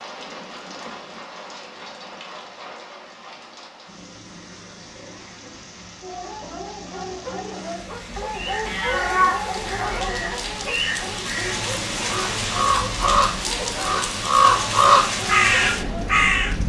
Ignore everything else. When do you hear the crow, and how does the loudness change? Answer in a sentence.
The crow can be heard from 8.3 to 16.6 s, getting louder.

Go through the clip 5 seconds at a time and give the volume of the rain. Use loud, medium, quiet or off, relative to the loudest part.
medium, medium, loud, loud.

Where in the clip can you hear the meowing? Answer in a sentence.
The meowing can be heard from 8.7 to 10.1 s.